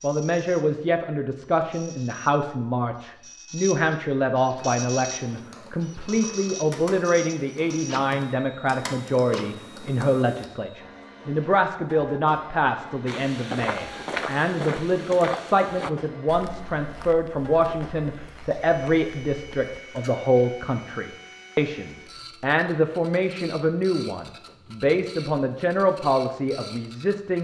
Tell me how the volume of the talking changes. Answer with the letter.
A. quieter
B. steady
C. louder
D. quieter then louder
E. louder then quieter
B.